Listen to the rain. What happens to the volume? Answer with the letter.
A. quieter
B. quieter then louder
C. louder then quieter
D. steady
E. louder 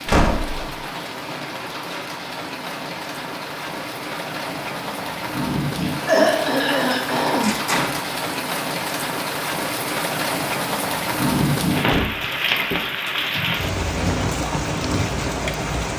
E.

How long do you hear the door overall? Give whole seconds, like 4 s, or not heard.
2 s.